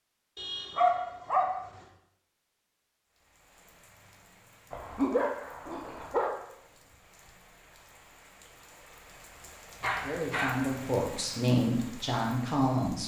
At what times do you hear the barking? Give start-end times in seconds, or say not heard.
0.3-1.6, 4.7-6.3, 9.8-10.7.